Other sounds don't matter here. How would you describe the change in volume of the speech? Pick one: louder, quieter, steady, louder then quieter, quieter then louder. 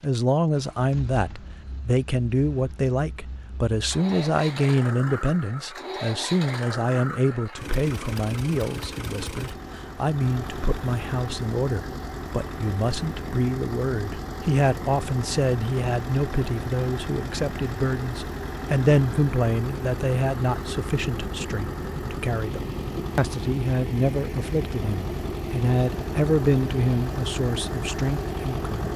steady.